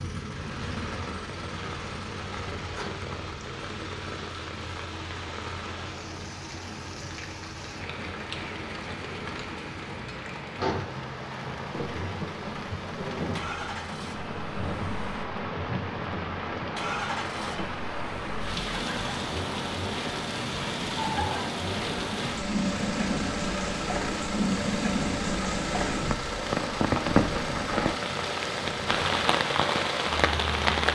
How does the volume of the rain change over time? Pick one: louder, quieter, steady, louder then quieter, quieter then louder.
louder.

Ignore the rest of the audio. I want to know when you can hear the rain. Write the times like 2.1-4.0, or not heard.
0.1-30.8.